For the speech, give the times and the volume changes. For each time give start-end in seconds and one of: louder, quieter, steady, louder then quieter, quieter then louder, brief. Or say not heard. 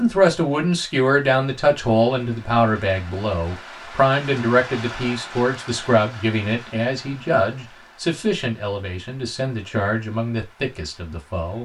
0.0-11.6 quieter.